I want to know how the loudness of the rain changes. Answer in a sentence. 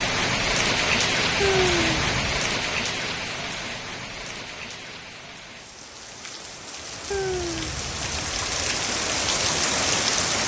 The volume of the rain goes down, then up.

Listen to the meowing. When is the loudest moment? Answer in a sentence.
The loudest moment of the meowing is at 2 seconds.